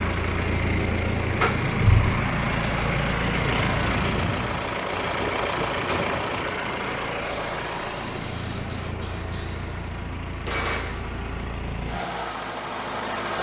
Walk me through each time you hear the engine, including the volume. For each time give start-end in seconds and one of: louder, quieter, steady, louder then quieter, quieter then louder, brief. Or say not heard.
0.0-13.3 quieter.